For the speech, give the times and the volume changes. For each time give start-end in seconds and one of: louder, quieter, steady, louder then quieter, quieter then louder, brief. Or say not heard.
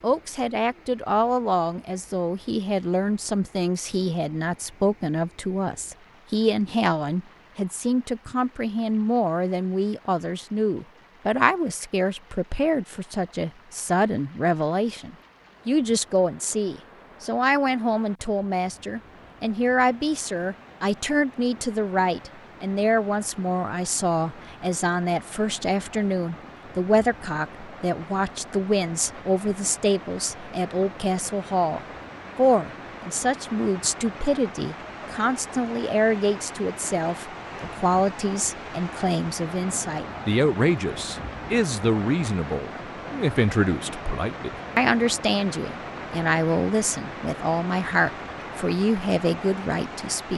0.0-50.3 steady.